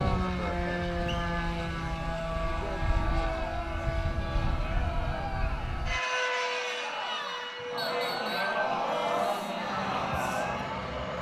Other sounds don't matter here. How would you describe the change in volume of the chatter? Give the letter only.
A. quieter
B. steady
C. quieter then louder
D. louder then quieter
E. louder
E.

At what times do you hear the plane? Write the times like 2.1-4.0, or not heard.
0.0-11.1.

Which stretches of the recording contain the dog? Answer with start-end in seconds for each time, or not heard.
not heard.